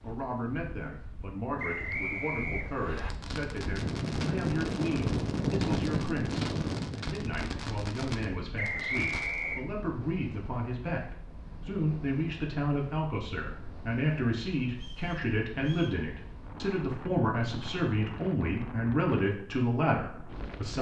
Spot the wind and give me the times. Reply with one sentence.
You can hear the wind from 0.0 to 20.7 s.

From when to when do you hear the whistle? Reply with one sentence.
The whistle can be heard from 1.6 to 3.1 s, from 8.6 to 9.7 s and from 14.7 to 16.0 s.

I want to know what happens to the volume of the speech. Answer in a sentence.
The loudness of the speech goes up.